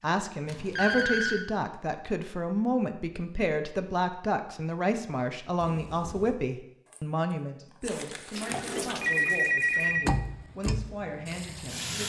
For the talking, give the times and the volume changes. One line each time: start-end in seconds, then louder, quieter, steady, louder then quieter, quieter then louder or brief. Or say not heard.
0.0-12.0 quieter.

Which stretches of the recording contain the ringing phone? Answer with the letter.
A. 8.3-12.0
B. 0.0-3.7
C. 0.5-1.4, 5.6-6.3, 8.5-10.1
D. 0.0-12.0
C.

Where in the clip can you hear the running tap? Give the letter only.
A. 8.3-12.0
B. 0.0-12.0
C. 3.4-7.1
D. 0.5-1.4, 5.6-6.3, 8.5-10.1
A.